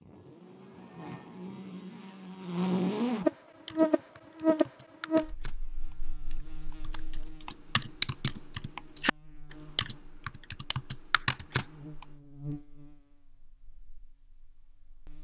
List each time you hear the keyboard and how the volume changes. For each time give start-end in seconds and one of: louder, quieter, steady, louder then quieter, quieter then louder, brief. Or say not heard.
3.6-12.1 quieter then louder.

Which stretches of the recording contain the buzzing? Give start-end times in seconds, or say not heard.
0.0-15.1.